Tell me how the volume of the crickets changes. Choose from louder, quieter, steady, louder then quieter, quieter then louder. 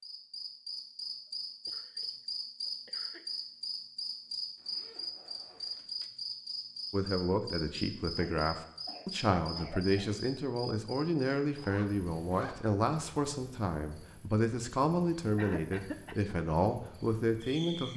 quieter.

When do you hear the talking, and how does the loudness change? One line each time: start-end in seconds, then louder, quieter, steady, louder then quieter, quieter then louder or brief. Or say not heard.
6.9-17.9 steady.